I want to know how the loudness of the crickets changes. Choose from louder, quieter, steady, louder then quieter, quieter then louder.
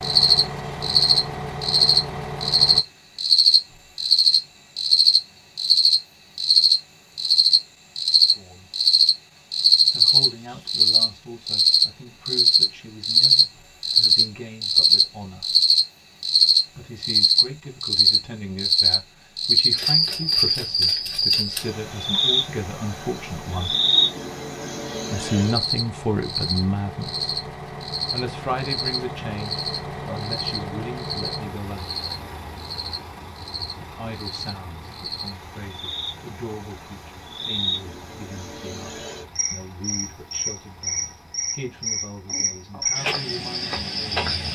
quieter.